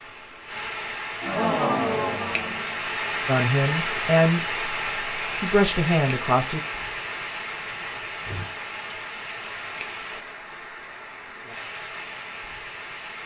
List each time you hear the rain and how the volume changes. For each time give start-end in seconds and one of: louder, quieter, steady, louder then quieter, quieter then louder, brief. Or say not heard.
0.0-13.2 quieter.